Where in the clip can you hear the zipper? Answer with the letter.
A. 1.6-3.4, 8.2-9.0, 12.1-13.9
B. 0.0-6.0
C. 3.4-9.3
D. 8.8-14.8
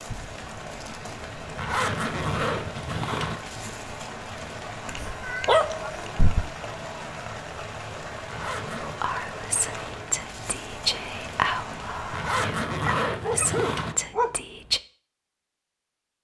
A.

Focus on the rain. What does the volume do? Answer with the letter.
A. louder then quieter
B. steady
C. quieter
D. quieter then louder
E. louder
B.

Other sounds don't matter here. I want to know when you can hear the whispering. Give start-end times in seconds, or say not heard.
8.8-14.8.